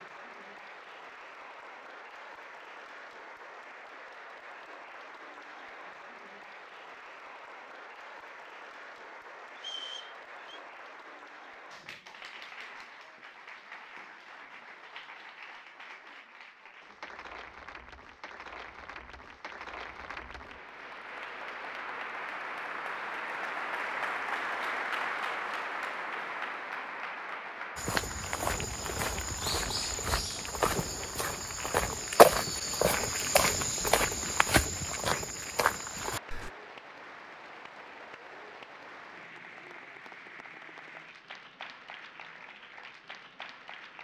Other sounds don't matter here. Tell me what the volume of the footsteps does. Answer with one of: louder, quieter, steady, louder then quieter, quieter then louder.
louder then quieter.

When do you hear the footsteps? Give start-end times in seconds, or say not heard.
27.8-36.5.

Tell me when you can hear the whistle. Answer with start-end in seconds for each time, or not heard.
9.6-10.6.